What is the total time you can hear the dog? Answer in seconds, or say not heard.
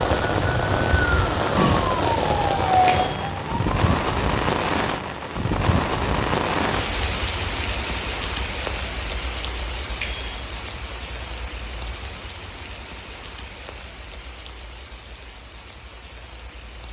not heard.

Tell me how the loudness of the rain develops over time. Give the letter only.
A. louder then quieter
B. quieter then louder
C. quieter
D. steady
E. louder
C.